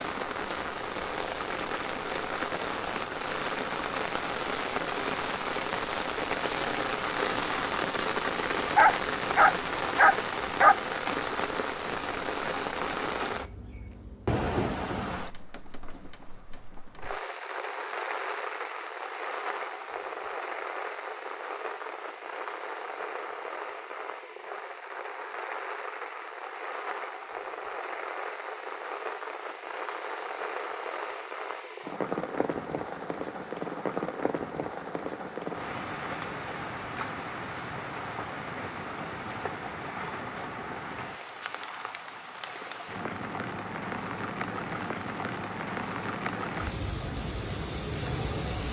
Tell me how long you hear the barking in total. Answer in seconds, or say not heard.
2 s.